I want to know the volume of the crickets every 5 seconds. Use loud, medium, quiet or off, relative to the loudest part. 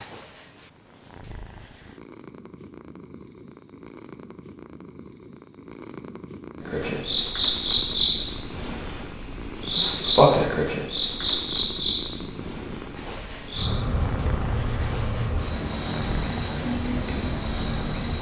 off, loud, loud, medium.